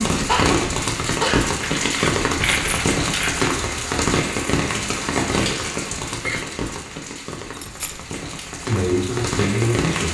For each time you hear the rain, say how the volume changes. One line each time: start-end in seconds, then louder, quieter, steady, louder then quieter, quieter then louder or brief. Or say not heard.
0.0-10.1 quieter.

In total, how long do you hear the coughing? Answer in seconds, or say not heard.
2 s.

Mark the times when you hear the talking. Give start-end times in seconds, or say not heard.
8.7-10.1.